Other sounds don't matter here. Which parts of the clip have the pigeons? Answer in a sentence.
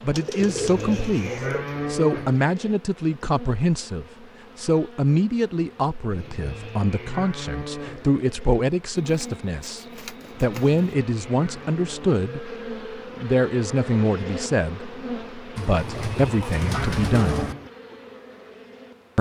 The pigeons can be heard from 0.1 to 1.6 s, from 8.9 to 10.9 s and from 15.6 to 17.6 s.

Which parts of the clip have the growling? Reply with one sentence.
The growling can't be heard in this clip.